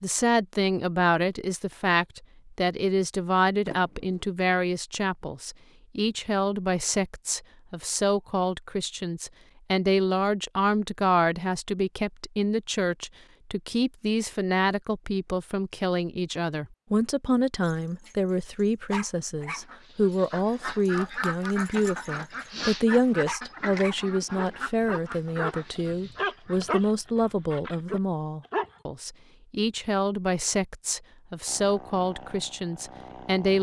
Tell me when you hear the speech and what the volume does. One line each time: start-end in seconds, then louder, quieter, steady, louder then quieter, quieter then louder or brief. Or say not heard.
0.0-33.5 steady.